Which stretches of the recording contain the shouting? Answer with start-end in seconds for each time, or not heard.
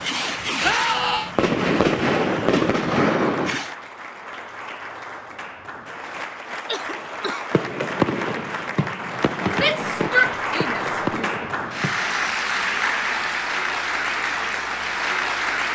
0.6-1.3, 9.5-11.2.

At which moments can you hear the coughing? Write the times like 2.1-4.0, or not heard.
6.7-7.5.